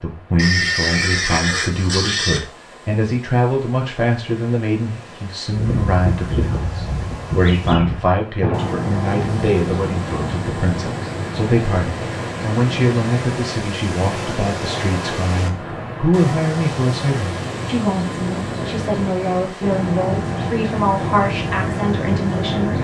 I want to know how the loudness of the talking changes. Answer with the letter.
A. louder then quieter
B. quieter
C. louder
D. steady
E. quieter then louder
D.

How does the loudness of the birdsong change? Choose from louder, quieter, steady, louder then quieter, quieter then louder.
quieter then louder.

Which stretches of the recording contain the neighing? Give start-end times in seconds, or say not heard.
0.3-2.4.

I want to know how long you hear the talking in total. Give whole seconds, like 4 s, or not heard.
23 s.